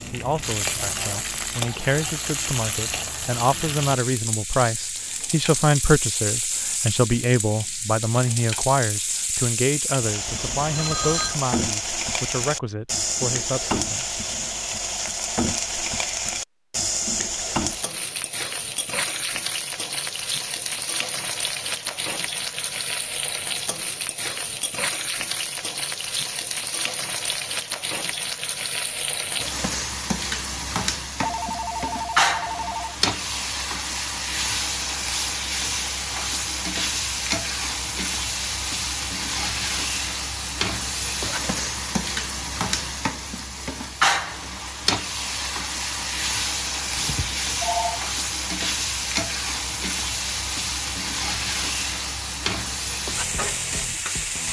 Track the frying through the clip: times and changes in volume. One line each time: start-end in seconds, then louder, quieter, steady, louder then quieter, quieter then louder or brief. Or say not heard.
0.0-54.4 steady.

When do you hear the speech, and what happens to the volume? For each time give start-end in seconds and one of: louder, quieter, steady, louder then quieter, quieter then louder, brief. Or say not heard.
0.1-14.2 louder then quieter.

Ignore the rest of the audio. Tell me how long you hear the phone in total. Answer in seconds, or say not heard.
4 s.